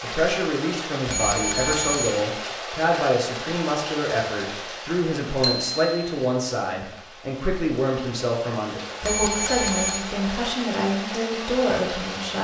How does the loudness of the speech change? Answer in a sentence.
The loudness of the speech stays about the same.